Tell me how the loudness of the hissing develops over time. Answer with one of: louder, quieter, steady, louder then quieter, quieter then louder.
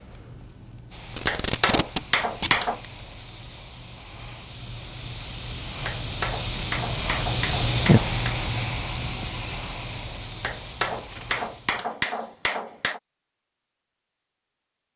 louder then quieter.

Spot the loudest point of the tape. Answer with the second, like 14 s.
2 s.